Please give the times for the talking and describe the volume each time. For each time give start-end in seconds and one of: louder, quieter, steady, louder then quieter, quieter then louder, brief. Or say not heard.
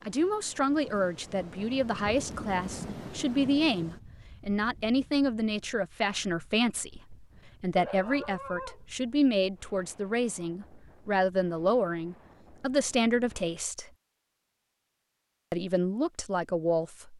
0.1-13.9 steady
15.5-17.1 brief.